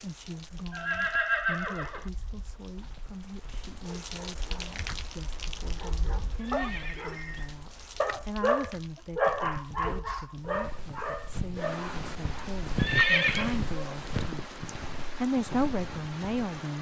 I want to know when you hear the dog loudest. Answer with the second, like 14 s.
9 s.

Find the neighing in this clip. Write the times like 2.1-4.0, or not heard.
0.7-2.1, 6.4-7.2, 12.8-13.6.